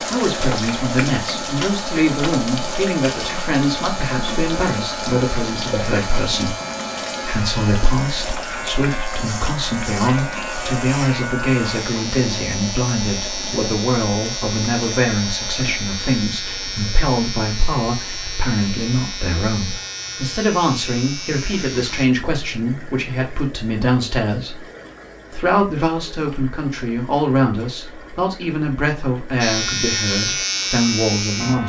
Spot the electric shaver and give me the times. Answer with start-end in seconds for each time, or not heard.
0.0-22.1, 29.4-31.6.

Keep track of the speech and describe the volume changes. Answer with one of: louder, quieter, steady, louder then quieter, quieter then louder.
steady.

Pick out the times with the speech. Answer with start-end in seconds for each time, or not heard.
0.1-6.5, 7.2-24.6, 25.3-31.6.